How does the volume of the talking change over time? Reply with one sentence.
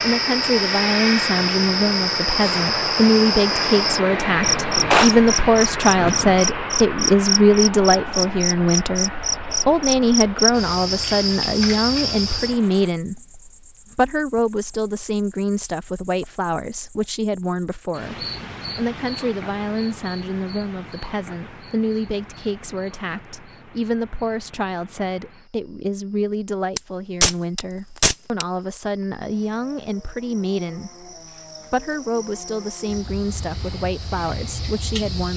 The loudness of the talking goes down.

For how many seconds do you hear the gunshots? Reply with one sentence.
You can hear the gunshots for 4 seconds altogether.